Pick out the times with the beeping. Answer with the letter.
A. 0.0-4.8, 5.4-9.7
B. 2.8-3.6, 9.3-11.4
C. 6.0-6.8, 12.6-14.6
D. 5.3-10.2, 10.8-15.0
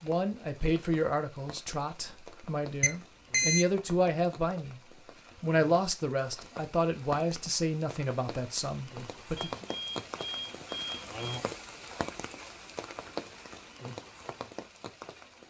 B.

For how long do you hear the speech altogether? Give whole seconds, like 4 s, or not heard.
9 s.